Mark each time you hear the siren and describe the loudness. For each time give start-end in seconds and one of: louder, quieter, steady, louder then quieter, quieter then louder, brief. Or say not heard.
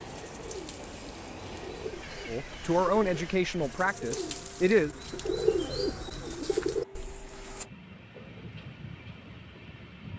not heard.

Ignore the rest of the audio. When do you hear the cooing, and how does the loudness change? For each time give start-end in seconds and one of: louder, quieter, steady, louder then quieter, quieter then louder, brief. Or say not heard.
0.1-7.7 louder.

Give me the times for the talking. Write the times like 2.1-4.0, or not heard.
2.2-4.9.